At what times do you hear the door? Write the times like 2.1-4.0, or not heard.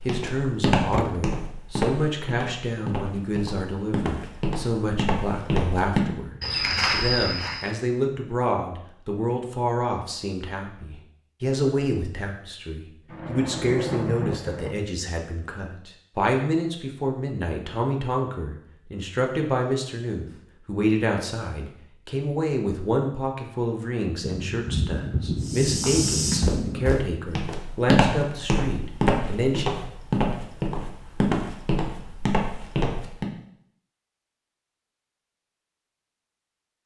0.9-1.3.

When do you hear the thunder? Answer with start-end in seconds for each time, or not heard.
13.1-14.8, 24.2-27.0.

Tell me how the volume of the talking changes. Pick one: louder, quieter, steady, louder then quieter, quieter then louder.
steady.